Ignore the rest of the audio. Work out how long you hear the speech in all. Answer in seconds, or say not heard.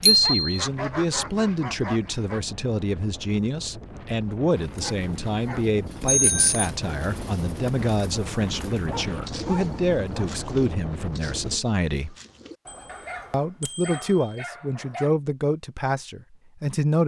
16 s.